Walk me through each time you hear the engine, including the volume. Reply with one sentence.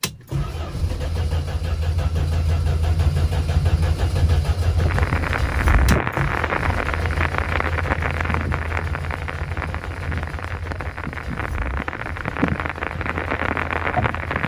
The engine can be heard from 0.0 to 14.4 s, getting quieter.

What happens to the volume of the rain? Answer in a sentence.
The loudness of the rain goes down, then up.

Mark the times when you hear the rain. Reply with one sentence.
The rain can be heard from 4.8 to 14.4 s.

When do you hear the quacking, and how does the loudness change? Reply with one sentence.
The quacking can't be heard in this clip.